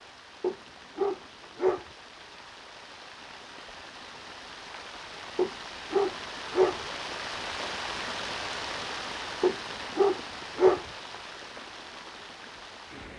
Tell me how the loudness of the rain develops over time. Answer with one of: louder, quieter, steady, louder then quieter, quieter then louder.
louder then quieter.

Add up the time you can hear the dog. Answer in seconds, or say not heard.
4 s.